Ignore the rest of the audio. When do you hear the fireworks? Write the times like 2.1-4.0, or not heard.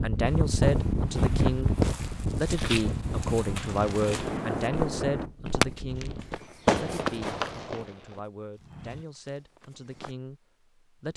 3.6-6.0, 6.7-8.2.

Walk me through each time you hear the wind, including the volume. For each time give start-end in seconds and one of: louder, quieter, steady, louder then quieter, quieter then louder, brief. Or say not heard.
0.0-6.4 quieter.